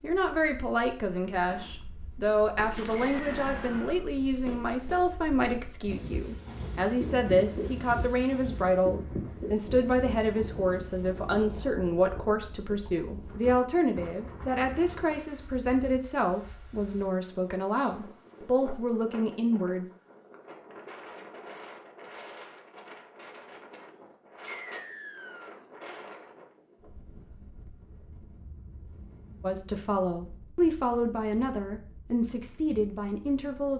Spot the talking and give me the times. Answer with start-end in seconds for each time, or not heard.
0.0-19.9, 29.4-33.7.